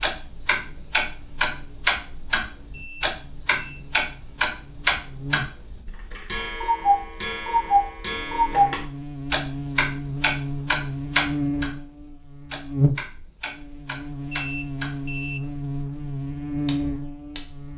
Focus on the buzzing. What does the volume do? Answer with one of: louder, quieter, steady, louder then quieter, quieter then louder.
louder.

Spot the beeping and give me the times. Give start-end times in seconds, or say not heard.
2.7-3.8, 14.3-15.4.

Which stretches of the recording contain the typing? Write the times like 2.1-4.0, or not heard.
not heard.